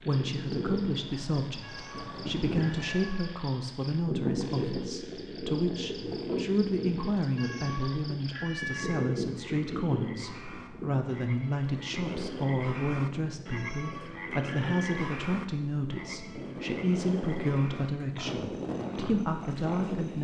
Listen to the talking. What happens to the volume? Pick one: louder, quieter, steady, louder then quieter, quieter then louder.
steady.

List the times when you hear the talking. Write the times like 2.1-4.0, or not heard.
0.1-20.1.